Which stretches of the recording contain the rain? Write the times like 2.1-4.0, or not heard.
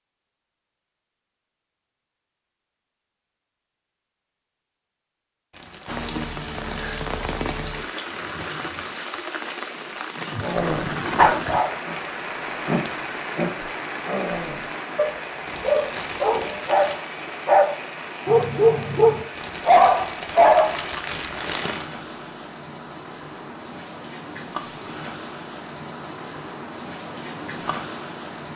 5.8-28.5.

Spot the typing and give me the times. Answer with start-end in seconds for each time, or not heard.
not heard.